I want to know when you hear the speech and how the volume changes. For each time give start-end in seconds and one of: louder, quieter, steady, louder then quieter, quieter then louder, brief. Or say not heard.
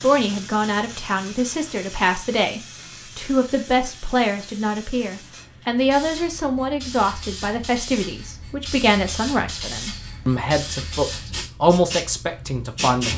0.0-13.1 steady.